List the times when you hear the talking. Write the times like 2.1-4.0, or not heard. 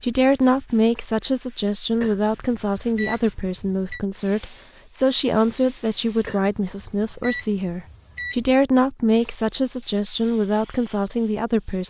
0.0-11.8.